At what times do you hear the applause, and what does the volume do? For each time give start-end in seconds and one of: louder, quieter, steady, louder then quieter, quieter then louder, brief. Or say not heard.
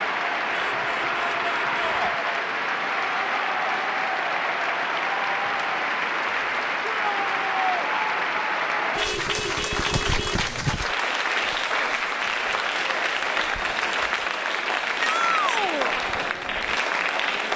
0.0-17.5 steady.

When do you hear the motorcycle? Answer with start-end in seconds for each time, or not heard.
not heard.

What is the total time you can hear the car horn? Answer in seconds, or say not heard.
3 s.